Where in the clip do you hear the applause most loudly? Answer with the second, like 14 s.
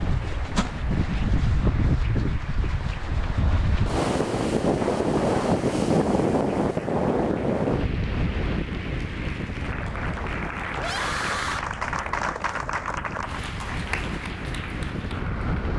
12 s.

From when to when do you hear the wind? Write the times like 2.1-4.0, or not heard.
0.0-15.7.